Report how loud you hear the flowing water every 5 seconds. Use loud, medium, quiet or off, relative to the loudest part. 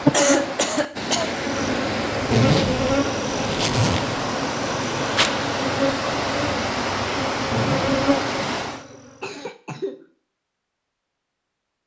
loud, loud, off.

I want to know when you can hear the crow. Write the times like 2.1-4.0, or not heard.
not heard.